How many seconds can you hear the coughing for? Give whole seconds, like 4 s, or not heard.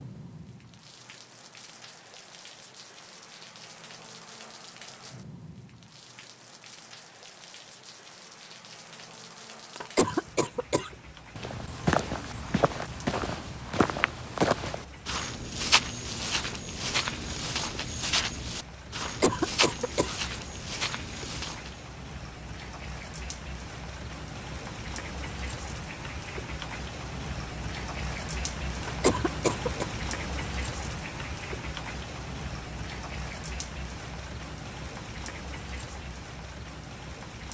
3 s.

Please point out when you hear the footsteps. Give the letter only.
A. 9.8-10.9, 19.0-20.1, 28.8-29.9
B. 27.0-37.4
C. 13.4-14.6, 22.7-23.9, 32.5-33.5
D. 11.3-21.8
D.